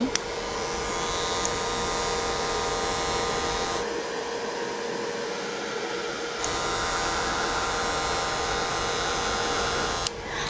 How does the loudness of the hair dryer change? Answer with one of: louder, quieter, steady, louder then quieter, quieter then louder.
steady.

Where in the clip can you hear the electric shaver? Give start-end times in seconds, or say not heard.
0.0-3.9, 6.3-10.4.